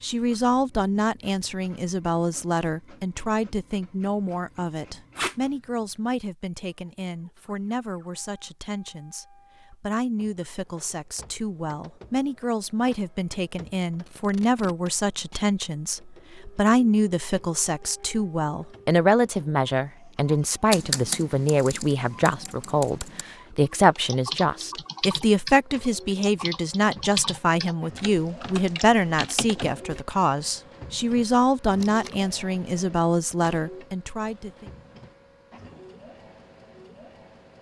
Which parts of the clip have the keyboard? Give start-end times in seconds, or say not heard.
20.7-30.0.